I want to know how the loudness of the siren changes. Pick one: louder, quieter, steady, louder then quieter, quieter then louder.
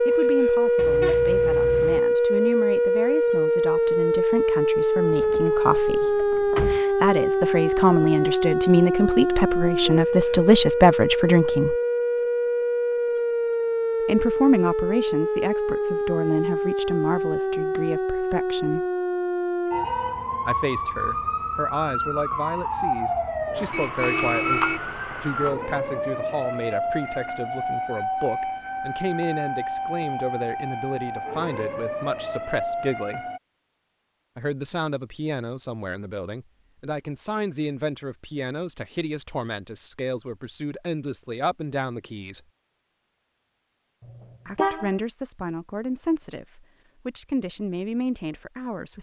quieter.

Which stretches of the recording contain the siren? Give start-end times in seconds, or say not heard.
0.0-33.4.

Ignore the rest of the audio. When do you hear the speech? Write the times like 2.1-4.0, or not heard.
0.0-11.8, 14.1-18.9, 20.4-33.2, 34.4-42.4, 44.5-48.9.